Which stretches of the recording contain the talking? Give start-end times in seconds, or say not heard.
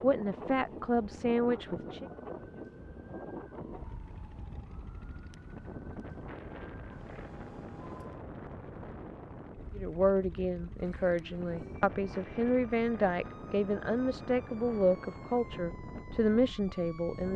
0.0-2.0, 9.8-17.3.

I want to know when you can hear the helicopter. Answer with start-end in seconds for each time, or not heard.
not heard.